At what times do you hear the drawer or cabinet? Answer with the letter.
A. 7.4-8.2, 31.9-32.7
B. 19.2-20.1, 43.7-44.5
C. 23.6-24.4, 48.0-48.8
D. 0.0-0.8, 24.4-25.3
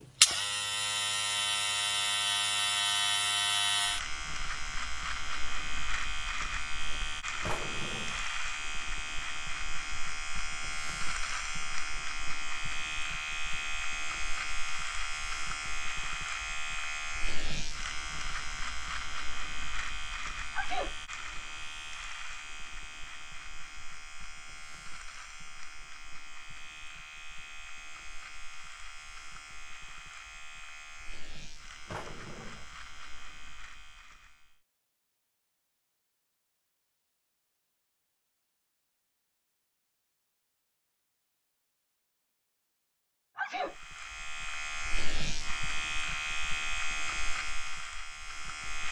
A.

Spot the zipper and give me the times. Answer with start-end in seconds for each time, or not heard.
not heard.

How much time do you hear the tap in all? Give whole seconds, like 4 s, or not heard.
not heard.